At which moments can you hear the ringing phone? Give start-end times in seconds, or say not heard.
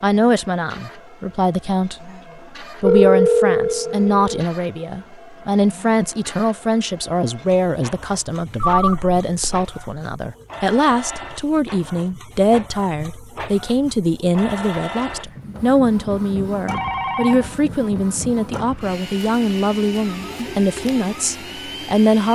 2.8-4.5, 8.6-9.7, 16.6-17.6.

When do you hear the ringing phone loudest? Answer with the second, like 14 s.
3 s.